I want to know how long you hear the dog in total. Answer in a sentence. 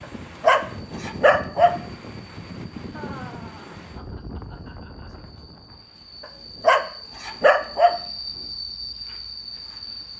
You can hear the dog for 3 seconds altogether.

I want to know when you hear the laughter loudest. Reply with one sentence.
The volume of the laughter peaks at 3 seconds.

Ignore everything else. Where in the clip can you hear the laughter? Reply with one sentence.
The laughter can be heard from 2.9 to 5.3 s.